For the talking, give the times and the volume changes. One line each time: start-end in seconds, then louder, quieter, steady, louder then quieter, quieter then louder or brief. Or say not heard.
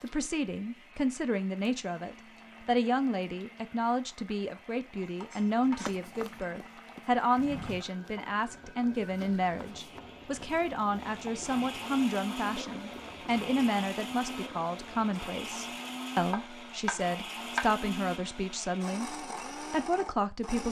0.0-20.6 steady.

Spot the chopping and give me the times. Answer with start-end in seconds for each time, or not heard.
5.2-6.5, 16.3-17.8.